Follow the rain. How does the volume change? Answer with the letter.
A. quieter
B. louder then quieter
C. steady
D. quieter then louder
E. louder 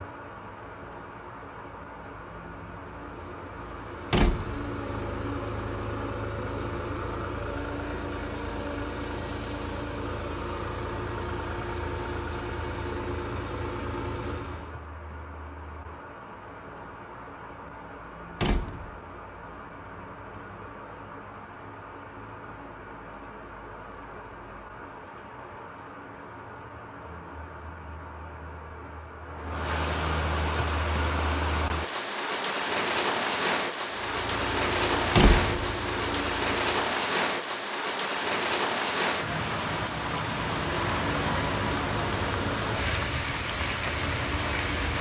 E.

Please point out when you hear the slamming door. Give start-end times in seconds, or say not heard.
4.1-4.7, 18.4-18.9, 35.1-35.6.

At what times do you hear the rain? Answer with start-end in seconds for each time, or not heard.
0.0-44.9.